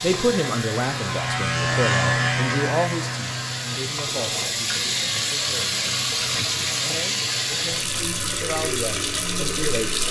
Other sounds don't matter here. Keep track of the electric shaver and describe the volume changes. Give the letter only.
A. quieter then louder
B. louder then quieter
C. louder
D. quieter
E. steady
D.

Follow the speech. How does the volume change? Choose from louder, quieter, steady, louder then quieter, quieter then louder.
quieter then louder.